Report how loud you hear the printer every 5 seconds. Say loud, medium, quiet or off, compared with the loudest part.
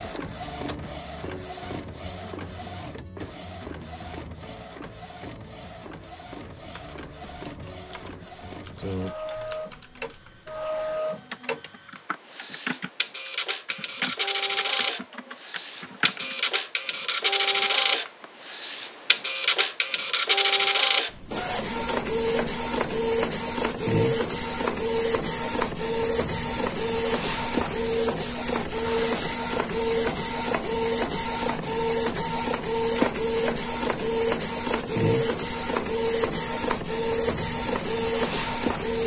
quiet, quiet, medium, loud, loud, loud, loud, loud.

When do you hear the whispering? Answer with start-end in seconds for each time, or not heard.
not heard.